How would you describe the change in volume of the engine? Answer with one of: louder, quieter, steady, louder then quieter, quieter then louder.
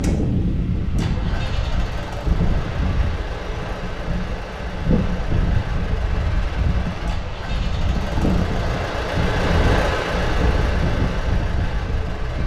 louder.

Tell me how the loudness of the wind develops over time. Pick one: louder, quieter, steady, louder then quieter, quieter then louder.
steady.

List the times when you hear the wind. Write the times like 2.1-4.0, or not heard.
0.0-12.4.